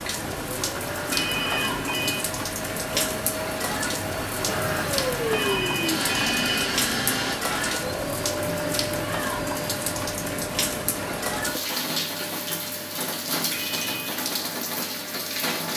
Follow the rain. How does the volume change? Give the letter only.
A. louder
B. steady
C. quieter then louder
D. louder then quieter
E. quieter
B.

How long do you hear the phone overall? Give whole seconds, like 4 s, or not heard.
4 s.